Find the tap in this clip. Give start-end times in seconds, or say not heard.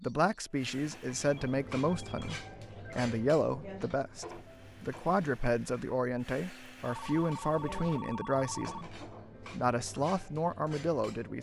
not heard.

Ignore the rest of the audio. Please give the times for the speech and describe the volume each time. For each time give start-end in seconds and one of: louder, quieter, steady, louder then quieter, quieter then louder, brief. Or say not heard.
0.0-11.3 steady.